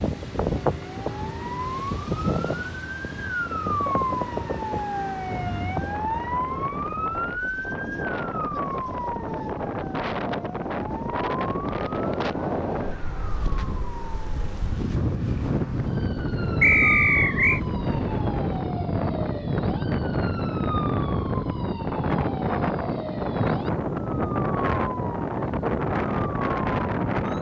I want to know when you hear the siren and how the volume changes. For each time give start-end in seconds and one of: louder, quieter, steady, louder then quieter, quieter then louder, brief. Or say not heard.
0.0-27.3 quieter.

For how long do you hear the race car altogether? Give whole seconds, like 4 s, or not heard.
not heard.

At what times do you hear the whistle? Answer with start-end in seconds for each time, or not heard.
16.6-17.6.